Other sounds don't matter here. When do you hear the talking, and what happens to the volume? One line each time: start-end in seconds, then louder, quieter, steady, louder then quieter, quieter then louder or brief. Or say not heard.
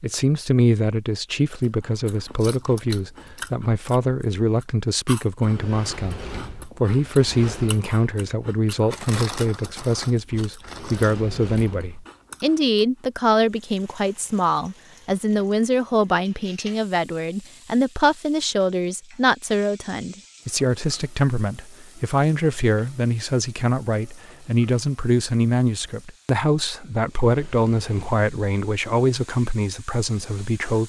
0.0-30.8 steady.